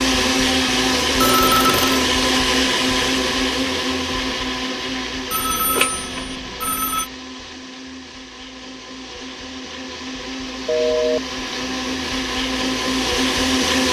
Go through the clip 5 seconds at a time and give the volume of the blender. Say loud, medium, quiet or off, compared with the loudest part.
loud, quiet, loud.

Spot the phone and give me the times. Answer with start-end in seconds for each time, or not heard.
1.2-2.0, 5.3-7.0, 10.7-11.2.